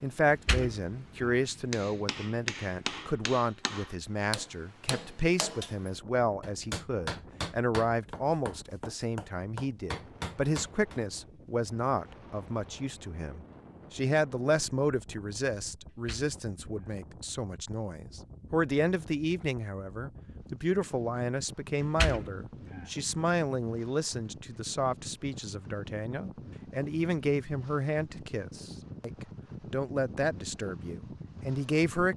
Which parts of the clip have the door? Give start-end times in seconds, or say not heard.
0.3-1.4, 15.9-16.9, 21.8-22.9.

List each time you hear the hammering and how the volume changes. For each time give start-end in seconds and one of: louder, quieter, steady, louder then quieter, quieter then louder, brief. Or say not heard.
1.7-11.0 steady.